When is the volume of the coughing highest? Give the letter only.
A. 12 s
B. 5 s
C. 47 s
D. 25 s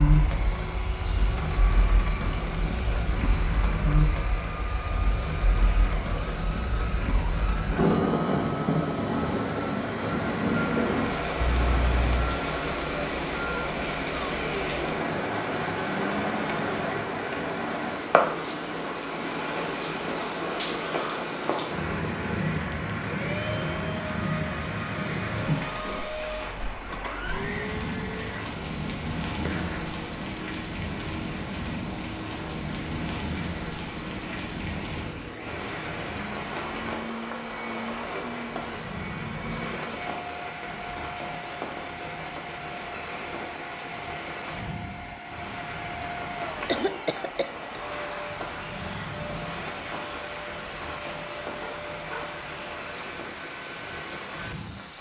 C.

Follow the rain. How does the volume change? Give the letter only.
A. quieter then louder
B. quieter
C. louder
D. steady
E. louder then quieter
B.